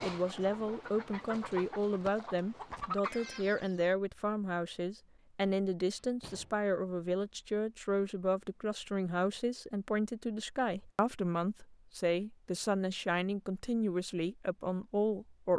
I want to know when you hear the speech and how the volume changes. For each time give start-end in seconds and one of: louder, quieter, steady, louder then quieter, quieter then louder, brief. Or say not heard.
0.0-15.5 steady.